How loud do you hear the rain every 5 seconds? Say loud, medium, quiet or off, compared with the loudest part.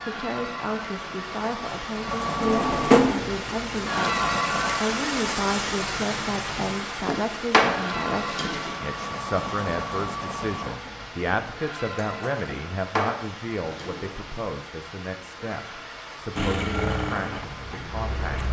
loud, loud, medium, medium.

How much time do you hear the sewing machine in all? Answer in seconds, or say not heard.
12 s.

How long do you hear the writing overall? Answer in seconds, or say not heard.
not heard.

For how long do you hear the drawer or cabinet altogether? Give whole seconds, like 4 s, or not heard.
4 s.